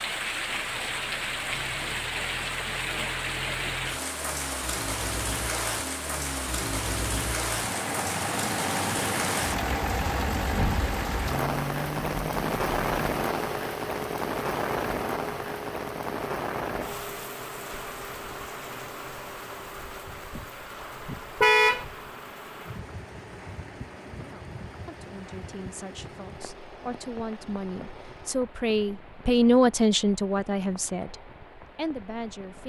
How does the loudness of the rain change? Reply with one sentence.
The volume of the rain goes down.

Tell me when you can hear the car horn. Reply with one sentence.
You can hear the car horn from 21.4 to 21.9 s.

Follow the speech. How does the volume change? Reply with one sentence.
The volume of the speech goes up, then down.